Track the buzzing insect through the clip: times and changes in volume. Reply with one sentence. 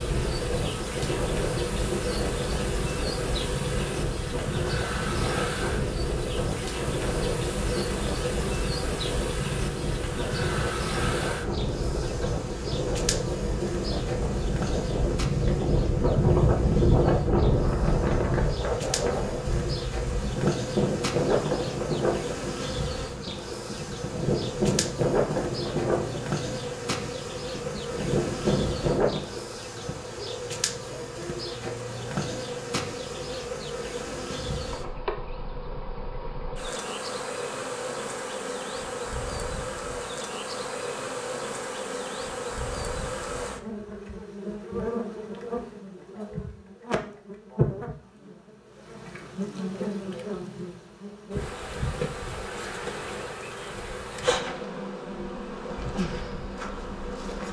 You can hear the buzzing insect from 0.0 to 57.4 s, at a steady volume.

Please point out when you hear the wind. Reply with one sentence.
The wind can be heard from 0.0 to 29.2 s.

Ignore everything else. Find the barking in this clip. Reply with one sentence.
You can't hear the barking here.